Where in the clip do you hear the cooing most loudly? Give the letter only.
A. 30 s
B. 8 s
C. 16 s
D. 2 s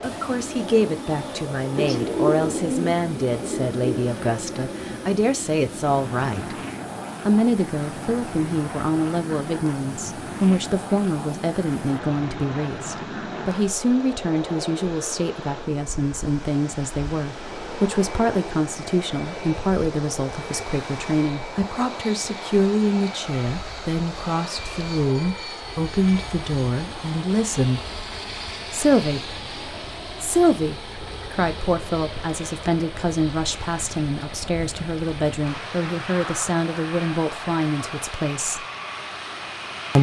D.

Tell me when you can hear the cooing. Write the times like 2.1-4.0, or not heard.
1.8-4.1.